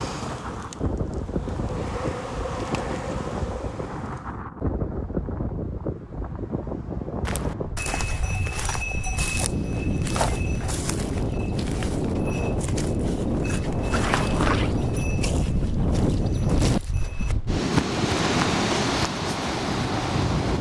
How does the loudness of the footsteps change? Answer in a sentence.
The loudness of the footsteps goes down, then up.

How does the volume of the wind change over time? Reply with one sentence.
The loudness of the wind goes up.